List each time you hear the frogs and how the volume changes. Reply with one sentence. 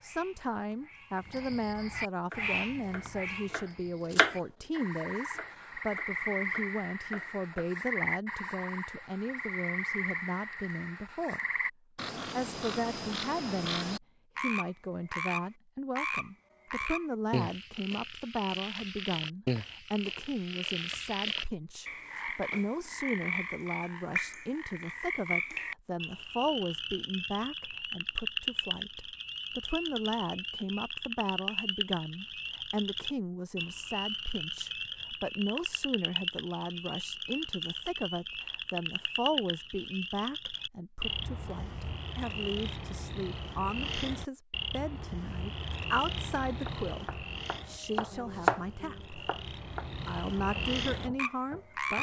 The frogs can be heard from 0.0 to 51.9 s, at a steady volume.